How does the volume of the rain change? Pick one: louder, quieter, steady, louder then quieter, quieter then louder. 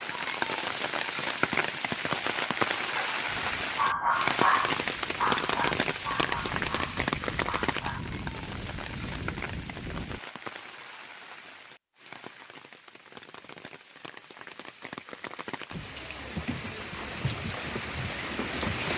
quieter then louder.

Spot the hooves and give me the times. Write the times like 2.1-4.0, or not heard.
3.2-10.2, 15.7-18.9.